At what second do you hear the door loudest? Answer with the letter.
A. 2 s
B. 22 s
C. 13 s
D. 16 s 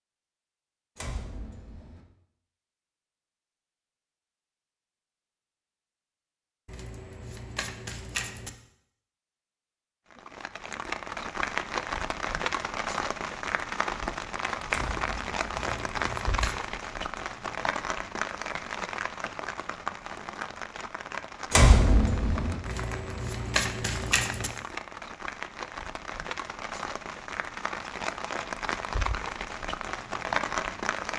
B.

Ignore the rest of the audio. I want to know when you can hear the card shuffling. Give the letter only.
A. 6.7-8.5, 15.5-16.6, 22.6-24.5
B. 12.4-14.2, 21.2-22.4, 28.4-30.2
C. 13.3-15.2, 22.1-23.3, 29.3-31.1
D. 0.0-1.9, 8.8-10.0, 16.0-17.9
A.